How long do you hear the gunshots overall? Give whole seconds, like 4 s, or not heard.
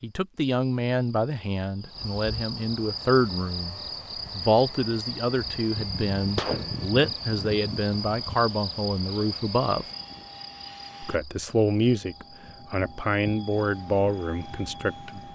3 s.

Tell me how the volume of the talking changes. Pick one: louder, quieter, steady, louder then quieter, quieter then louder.
steady.